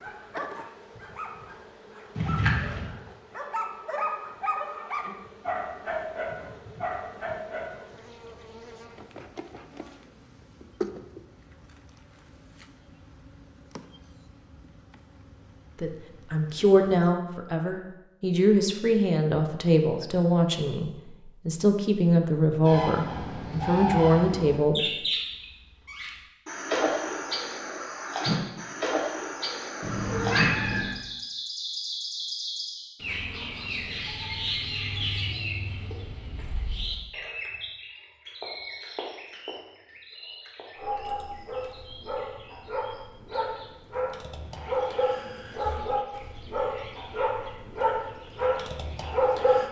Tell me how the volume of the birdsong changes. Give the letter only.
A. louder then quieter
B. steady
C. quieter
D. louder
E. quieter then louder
C.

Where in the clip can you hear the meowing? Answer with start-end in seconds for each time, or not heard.
2.1-2.9, 29.8-30.9.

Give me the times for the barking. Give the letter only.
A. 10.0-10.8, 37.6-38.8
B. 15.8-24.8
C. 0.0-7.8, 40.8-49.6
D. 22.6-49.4
C.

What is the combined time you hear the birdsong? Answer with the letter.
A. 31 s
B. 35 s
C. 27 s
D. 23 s
C.